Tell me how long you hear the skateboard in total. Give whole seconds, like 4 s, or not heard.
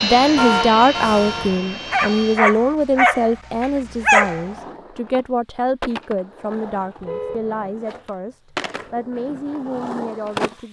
7 s.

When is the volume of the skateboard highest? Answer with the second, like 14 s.
10 s.